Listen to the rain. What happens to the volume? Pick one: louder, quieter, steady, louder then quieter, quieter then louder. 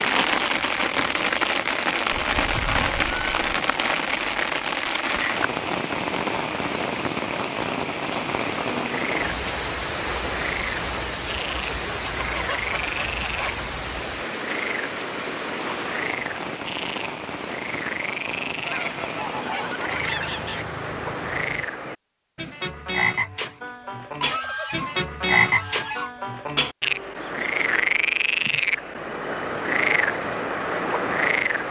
quieter.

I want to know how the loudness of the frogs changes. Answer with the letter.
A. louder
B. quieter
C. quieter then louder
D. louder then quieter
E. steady
A.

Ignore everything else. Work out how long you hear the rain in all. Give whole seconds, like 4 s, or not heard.
22 s.